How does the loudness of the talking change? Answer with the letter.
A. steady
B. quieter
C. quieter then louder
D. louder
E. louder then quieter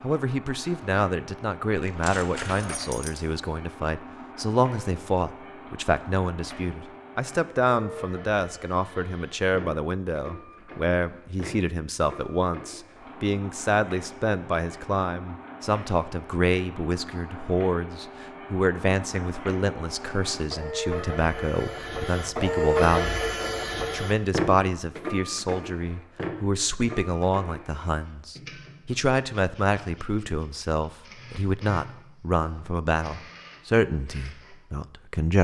A.